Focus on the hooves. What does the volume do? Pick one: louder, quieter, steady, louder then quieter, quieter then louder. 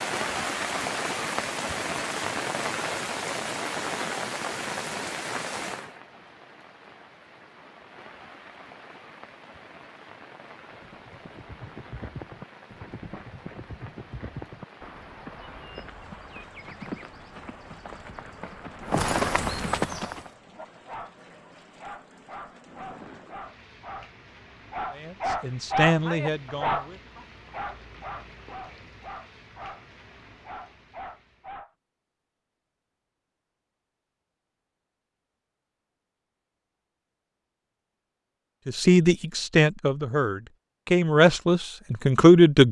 louder.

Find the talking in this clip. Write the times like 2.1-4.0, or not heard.
24.9-27.0, 38.6-42.6.